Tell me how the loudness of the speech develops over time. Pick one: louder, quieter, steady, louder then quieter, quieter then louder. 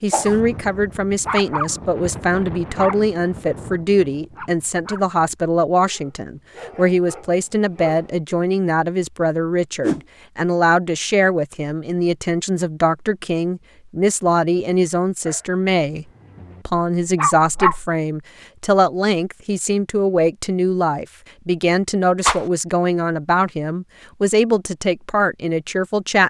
steady.